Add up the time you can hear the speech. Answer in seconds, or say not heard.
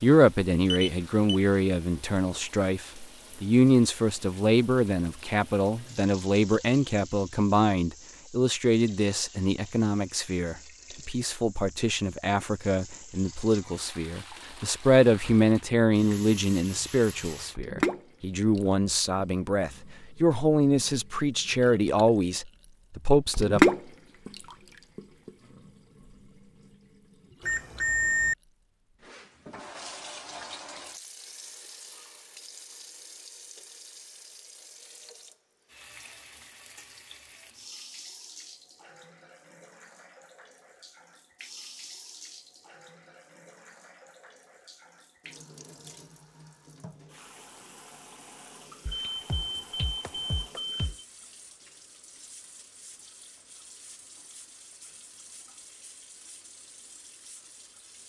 24 s.